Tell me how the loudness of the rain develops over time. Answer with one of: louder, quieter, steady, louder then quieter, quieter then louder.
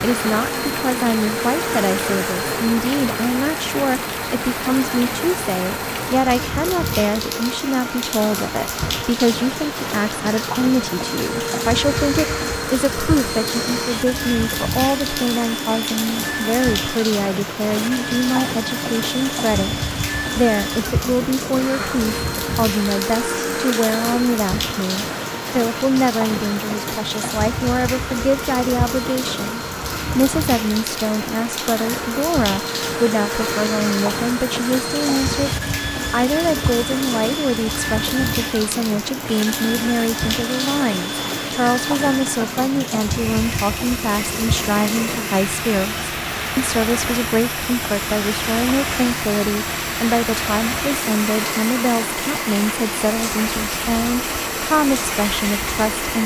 steady.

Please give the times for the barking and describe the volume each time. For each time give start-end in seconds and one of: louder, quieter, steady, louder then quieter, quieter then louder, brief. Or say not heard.
not heard.